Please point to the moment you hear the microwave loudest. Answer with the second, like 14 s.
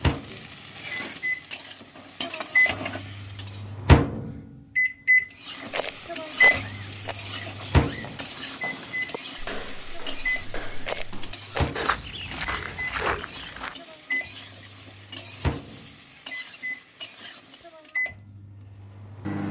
4 s.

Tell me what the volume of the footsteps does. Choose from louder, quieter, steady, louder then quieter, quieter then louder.
louder.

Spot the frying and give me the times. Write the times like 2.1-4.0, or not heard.
0.0-3.8, 5.3-17.9.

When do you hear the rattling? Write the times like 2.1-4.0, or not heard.
5.7-7.2, 10.8-11.8.